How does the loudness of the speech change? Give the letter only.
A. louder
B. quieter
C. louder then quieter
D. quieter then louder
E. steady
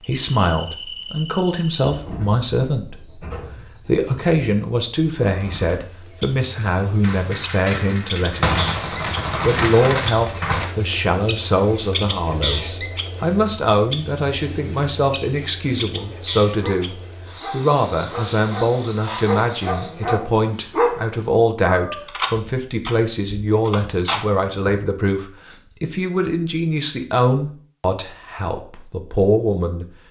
E.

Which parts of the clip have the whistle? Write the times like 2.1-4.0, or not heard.
not heard.